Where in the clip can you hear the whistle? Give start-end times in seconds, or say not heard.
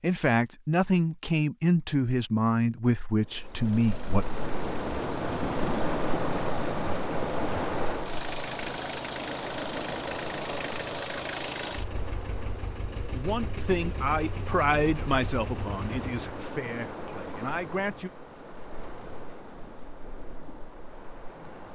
not heard.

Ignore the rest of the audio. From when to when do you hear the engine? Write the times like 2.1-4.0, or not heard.
3.4-16.3.